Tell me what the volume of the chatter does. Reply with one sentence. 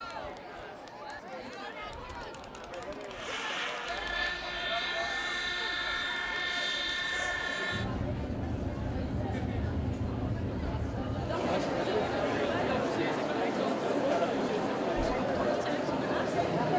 The volume of the chatter goes up.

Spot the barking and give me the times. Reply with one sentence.
The barking can't be heard in this clip.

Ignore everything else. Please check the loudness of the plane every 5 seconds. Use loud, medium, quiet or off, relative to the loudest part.
loud, loud, loud, off.